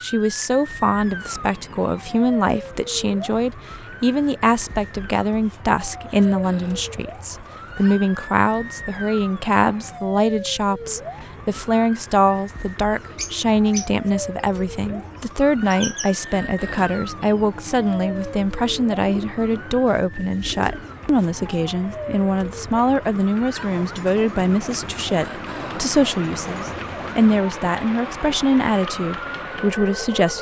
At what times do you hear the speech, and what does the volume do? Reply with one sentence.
You can hear the speech from 0.0 to 30.3 s, at a steady volume.